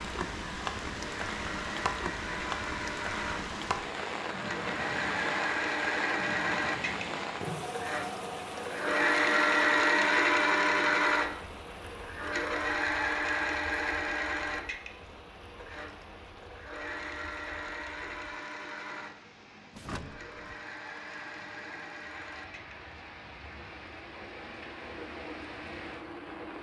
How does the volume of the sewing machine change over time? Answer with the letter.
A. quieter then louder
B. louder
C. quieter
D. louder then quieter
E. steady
D.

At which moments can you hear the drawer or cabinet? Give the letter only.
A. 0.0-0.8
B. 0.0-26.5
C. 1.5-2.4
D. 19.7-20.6
D.